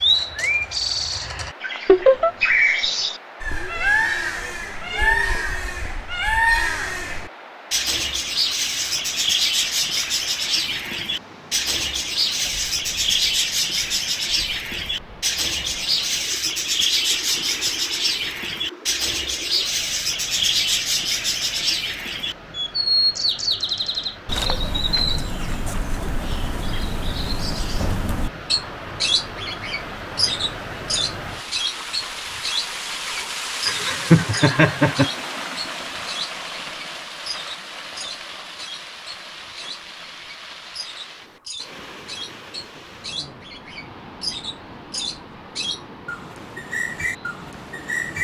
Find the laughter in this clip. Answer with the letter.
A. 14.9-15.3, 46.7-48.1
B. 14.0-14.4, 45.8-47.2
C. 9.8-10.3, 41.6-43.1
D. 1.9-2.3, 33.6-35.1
D.